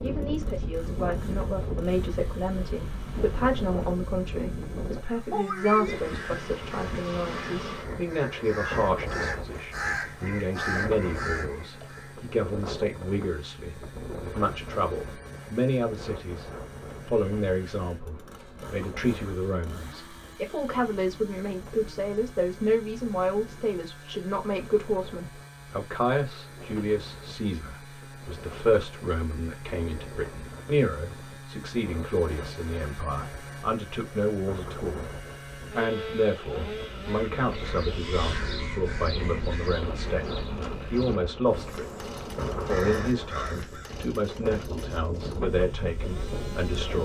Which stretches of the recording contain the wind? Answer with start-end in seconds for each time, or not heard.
0.0-47.0.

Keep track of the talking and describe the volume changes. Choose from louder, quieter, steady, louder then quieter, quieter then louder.
steady.